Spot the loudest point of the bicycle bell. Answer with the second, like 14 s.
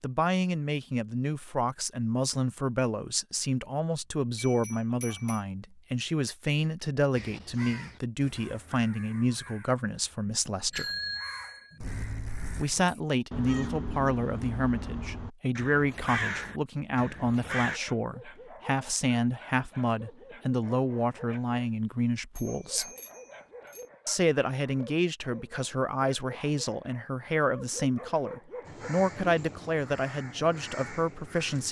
11 s.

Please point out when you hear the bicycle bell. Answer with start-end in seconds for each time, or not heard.
4.3-5.4, 10.7-12.7, 22.4-23.9.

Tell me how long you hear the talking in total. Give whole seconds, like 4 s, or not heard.
29 s.